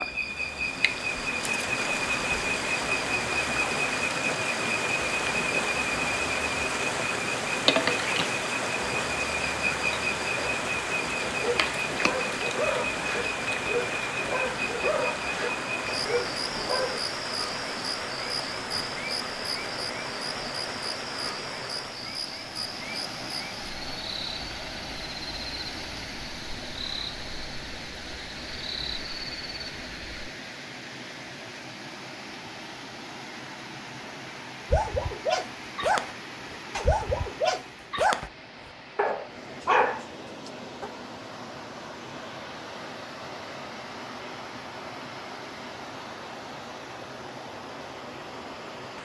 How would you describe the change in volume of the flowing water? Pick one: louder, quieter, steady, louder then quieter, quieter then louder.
quieter.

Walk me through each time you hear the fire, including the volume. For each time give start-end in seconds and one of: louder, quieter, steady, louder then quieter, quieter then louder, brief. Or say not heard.
not heard.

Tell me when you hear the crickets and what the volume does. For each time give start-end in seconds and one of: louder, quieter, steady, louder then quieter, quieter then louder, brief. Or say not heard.
0.0-30.3 quieter.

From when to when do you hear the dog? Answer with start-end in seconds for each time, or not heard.
11.2-17.0, 34.7-36.1, 36.8-40.9.